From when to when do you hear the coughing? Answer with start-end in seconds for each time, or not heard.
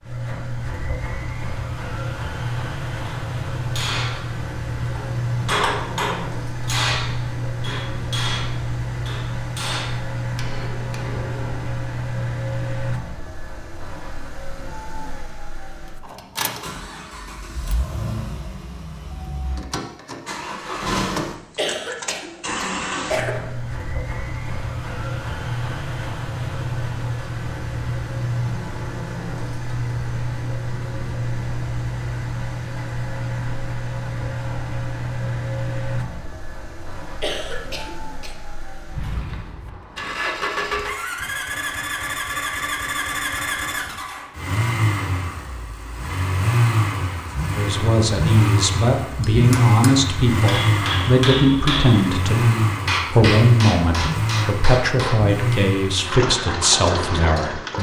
21.6-23.4, 37.2-38.4.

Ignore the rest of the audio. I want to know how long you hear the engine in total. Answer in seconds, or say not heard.
58 s.